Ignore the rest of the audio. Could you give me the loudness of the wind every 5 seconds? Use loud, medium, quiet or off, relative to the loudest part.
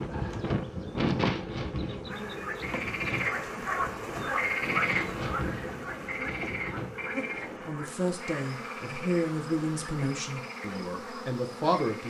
loud, medium, off.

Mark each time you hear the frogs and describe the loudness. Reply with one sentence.
The frogs can be heard from 2.0 to 12.0 s, getting quieter.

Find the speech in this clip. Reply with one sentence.
The speech can be heard from 7.6 to 12.0 s.